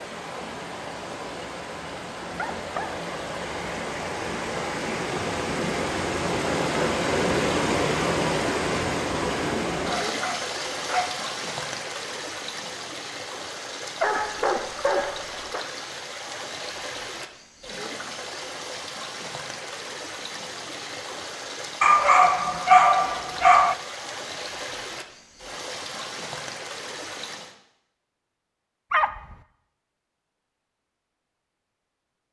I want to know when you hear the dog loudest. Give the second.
23 s.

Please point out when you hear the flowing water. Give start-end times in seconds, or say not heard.
0.0-27.6.